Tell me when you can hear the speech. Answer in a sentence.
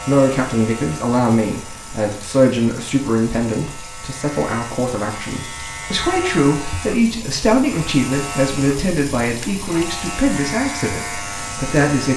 You can hear the speech from 0.1 to 12.1 s.